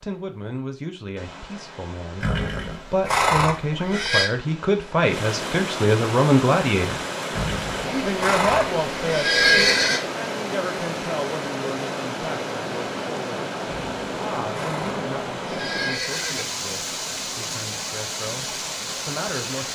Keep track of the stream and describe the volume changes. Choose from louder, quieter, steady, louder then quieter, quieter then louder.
louder.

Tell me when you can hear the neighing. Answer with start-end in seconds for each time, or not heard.
2.2-4.3, 7.3-10.0, 13.7-16.4.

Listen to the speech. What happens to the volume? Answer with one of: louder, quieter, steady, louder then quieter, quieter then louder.
louder then quieter.